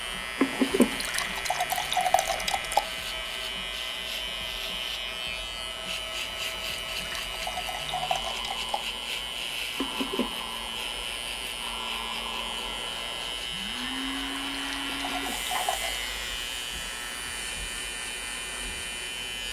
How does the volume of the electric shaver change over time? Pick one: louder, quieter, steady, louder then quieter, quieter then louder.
steady.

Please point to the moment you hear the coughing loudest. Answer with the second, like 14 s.
1 s.